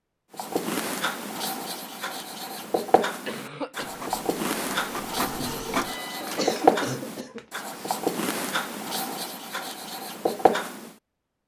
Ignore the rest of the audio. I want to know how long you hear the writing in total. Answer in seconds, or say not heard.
11 s.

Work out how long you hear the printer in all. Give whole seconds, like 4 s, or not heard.
3 s.